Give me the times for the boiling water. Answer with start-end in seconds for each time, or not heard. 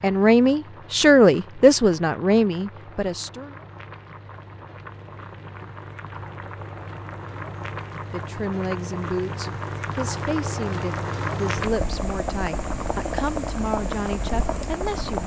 0.0-15.2.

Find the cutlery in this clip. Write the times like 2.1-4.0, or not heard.
not heard.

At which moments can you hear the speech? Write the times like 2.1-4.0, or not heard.
0.0-3.5, 8.1-15.2.